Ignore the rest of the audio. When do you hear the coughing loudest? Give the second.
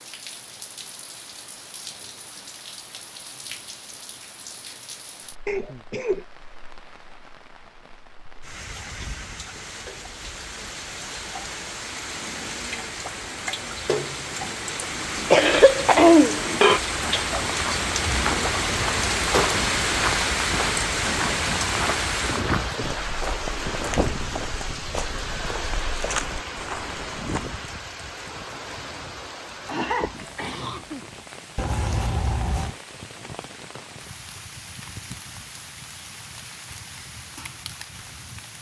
16 s.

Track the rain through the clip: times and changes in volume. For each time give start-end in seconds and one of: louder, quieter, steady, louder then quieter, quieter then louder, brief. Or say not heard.
0.0-38.5 louder then quieter.